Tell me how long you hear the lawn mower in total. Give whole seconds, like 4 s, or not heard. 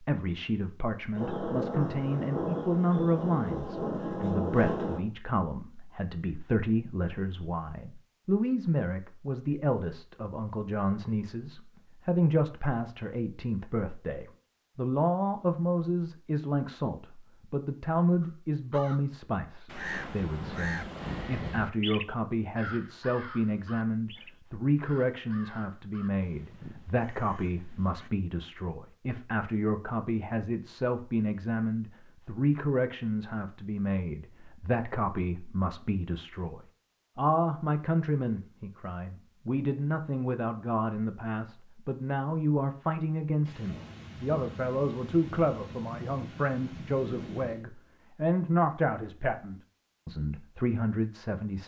not heard.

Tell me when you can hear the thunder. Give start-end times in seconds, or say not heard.
1.1-5.0, 43.5-47.6.